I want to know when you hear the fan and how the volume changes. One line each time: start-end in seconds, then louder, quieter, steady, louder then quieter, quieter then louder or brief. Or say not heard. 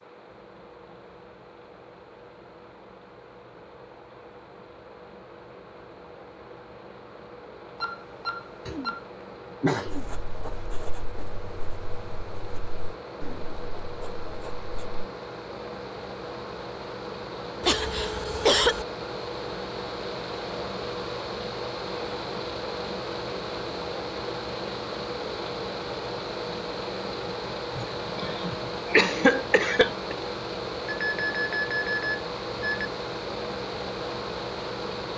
0.0-35.1 louder.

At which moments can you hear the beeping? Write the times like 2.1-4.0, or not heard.
7.8-9.0, 30.9-32.9.